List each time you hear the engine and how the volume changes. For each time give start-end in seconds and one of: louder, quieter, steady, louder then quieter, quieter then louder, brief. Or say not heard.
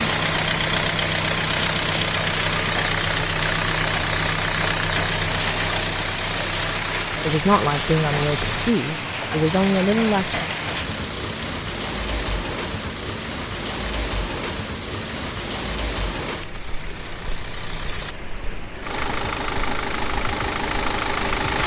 0.0-21.6 quieter then louder.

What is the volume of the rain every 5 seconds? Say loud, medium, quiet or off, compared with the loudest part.
loud, loud, loud, medium, off.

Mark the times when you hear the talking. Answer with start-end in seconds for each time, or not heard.
7.2-10.4.